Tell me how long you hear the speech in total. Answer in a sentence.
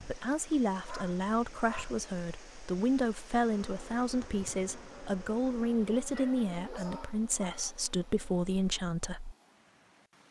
The speech can be heard for 9 seconds in total.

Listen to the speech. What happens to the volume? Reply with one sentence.
The volume of the speech stays about the same.